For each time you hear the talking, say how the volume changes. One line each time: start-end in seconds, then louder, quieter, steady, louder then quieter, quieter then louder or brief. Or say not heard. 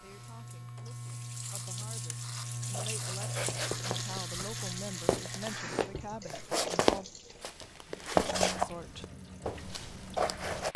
0.0-7.1 louder
8.6-9.1 brief.